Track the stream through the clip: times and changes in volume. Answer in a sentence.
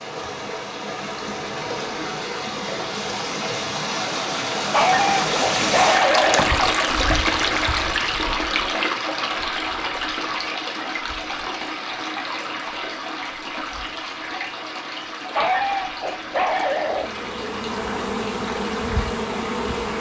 You can hear the stream from 0.0 to 19.9 s, getting louder then quieter.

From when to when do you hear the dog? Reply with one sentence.
The dog can be heard from 4.7 to 6.5 s and from 15.3 to 17.1 s.